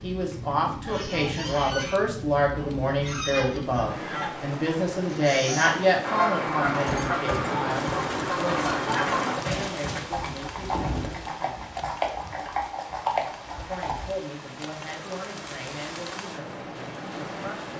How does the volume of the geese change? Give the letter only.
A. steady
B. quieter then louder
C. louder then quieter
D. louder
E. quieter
D.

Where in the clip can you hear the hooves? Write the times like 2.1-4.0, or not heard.
6.7-14.1.